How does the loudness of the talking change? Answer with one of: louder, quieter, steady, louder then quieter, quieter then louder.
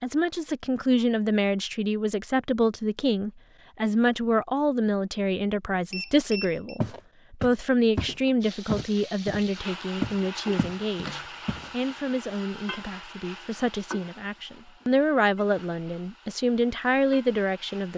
quieter then louder.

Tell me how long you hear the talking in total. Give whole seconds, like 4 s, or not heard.
18 s.